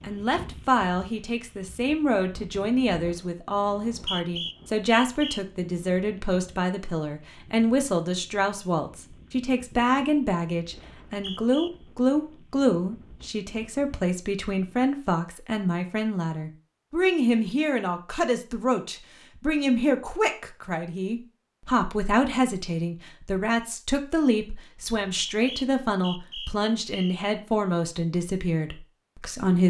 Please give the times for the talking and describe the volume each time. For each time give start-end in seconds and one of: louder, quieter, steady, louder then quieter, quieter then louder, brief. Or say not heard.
0.0-29.6 steady.